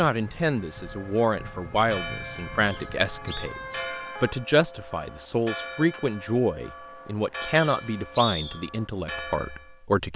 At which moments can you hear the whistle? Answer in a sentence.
The whistle can be heard from 2.6 to 3.5 s and from 7.5 to 8.6 s.